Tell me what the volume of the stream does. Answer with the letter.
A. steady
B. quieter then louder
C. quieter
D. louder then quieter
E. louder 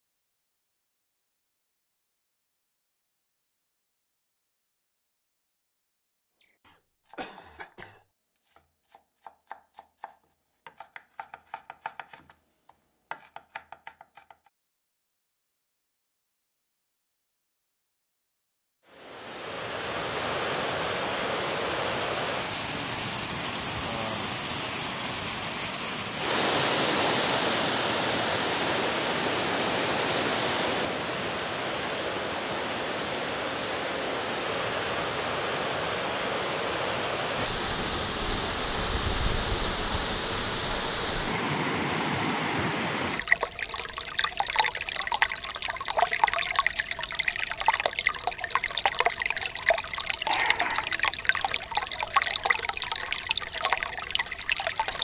A.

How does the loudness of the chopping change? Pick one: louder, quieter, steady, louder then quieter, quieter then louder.
louder.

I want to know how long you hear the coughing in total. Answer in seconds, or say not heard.
3 s.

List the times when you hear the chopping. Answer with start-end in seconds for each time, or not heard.
6.3-14.5.